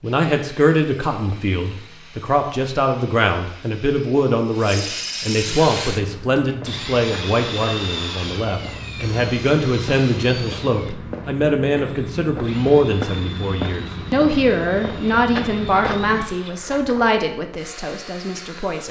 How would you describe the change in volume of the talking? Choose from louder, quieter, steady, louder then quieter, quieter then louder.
steady.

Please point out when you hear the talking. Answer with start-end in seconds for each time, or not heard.
0.0-18.8.